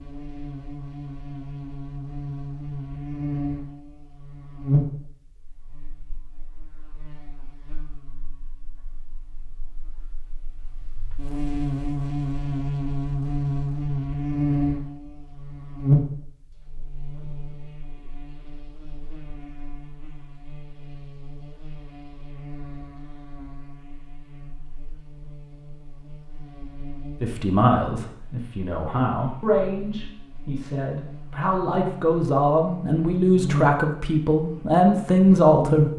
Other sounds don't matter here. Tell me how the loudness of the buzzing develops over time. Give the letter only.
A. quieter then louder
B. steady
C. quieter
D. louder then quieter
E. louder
A.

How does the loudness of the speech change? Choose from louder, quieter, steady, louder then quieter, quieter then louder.
louder.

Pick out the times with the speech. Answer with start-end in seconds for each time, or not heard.
27.2-35.9.